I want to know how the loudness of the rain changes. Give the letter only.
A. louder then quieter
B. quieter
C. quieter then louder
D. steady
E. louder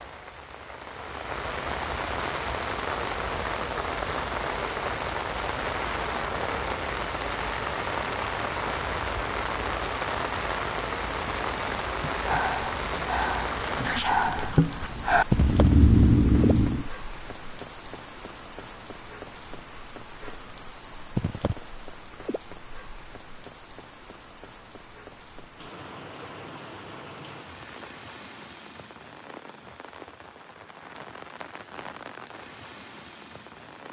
B.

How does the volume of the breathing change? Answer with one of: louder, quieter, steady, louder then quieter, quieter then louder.
louder.